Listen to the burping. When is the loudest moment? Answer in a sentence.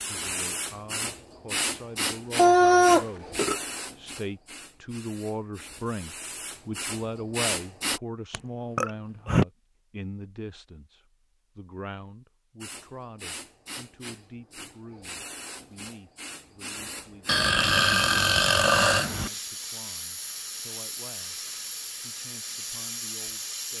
The volume of the burping peaks at 3 seconds.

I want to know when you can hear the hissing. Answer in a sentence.
The hissing can be heard from 0.0 to 8.0 s and from 12.6 to 23.7 s.